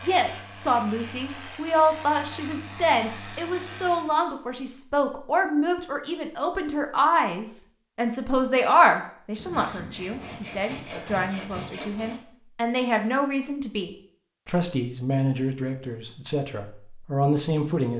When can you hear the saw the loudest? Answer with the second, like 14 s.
11 s.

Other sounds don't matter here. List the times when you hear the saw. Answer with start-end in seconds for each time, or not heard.
9.3-12.2.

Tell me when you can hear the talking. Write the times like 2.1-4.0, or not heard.
0.0-17.9.